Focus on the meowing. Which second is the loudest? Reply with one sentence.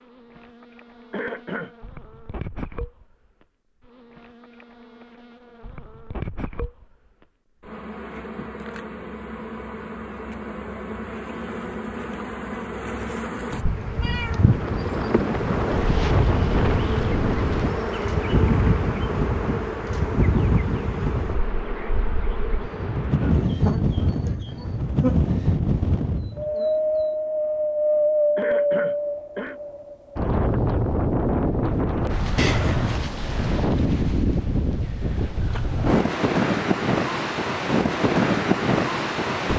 The loudest moment of the meowing is at 33 seconds.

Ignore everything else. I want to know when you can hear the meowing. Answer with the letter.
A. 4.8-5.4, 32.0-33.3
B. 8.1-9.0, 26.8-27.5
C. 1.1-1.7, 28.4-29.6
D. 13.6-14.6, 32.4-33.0
D.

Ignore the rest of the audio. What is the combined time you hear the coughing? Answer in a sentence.
You can hear the coughing for 2 seconds altogether.